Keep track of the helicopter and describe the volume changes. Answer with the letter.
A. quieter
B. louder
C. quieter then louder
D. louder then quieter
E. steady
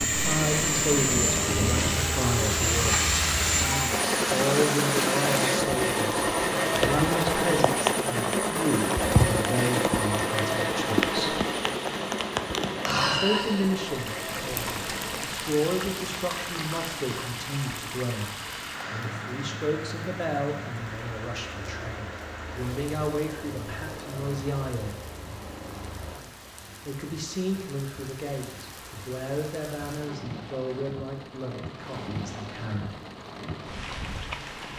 A.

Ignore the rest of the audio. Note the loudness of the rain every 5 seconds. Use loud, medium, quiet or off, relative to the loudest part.
loud, loud, loud, medium, quiet, quiet, medium.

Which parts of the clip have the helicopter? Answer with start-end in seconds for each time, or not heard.
0.0-26.2.